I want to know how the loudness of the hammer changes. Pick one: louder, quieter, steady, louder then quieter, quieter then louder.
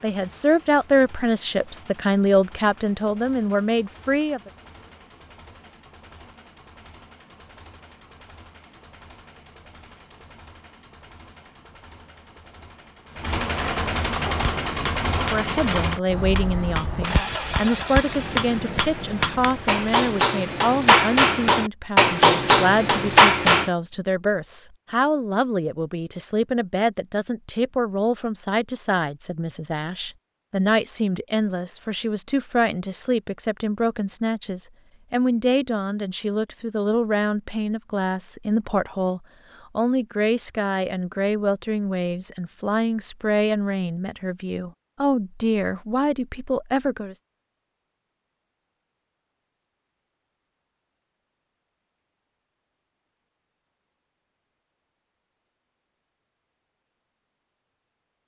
louder.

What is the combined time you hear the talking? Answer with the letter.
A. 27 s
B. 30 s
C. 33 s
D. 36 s
D.